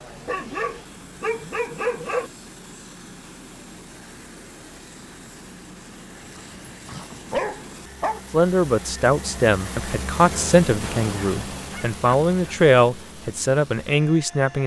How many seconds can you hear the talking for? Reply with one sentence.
The talking can be heard for 6 seconds in total.